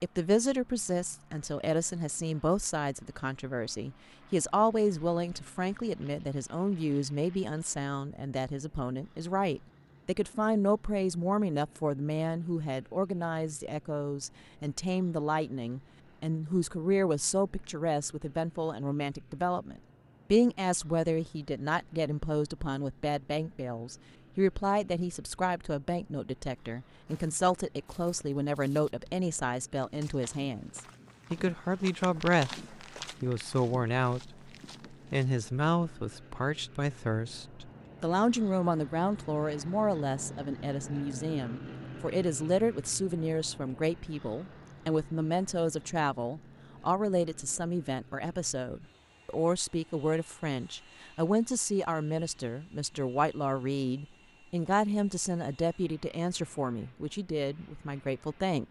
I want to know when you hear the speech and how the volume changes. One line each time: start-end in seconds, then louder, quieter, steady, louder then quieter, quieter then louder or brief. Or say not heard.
0.0-58.6 steady.